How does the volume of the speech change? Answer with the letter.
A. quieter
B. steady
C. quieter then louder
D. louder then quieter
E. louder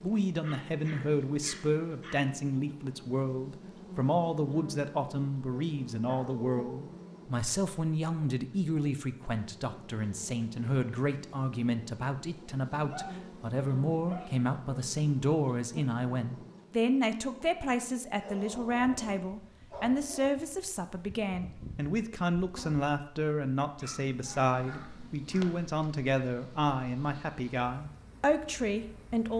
B.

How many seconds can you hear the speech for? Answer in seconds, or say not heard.
29 s.